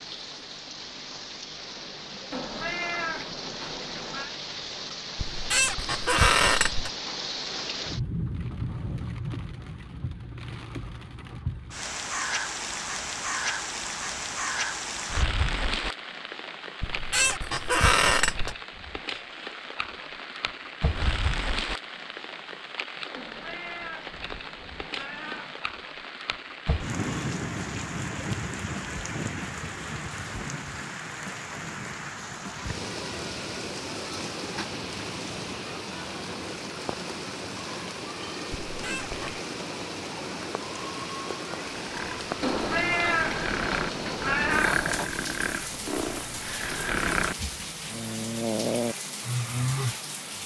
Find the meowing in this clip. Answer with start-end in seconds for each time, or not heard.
2.3-4.3, 23.1-25.6, 42.4-45.1.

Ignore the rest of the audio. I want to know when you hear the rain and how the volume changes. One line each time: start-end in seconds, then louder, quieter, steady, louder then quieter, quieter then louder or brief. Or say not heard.
0.0-50.4 steady.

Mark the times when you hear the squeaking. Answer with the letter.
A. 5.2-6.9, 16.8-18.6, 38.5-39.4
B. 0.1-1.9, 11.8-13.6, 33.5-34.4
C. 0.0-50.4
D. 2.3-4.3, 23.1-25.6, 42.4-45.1
A.